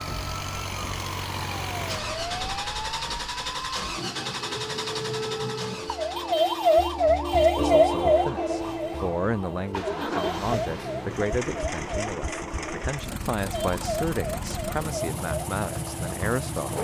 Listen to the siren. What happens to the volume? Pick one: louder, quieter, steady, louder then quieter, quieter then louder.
louder then quieter.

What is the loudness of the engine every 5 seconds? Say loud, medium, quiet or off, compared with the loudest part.
loud, medium, loud, loud.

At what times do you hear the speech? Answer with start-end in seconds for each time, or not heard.
7.4-16.8.